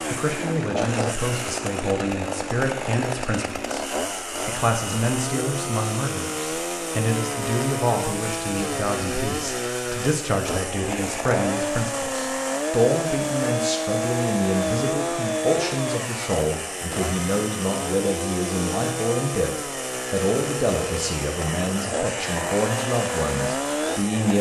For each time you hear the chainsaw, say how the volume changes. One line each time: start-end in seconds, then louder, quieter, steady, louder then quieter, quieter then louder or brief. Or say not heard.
0.0-24.3 steady.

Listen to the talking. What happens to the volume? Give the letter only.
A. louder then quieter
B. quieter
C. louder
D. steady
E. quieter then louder
D.